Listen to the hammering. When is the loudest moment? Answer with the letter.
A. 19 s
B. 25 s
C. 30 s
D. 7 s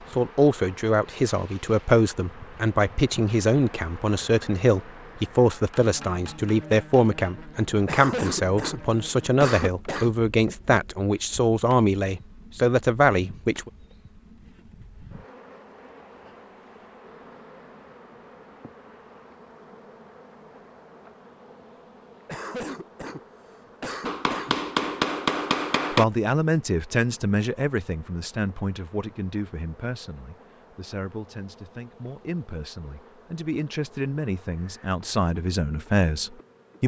B.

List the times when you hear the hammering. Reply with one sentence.
You can hear the hammering from 5.5 to 7.2 s and from 24.1 to 26.1 s.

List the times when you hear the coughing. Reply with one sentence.
You can hear the coughing from 7.8 to 10.2 s and from 22.2 to 24.6 s.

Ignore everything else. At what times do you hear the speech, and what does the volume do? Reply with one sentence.
You can hear the speech from 0.1 to 13.7 s, at a steady volume; and from 25.9 to 36.8 s, getting quieter then louder.